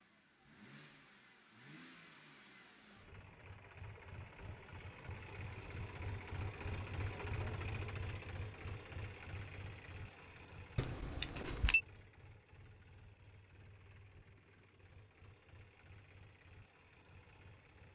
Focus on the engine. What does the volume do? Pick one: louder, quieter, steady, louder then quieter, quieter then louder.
louder then quieter.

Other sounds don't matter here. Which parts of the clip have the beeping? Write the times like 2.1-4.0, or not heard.
10.8-11.8.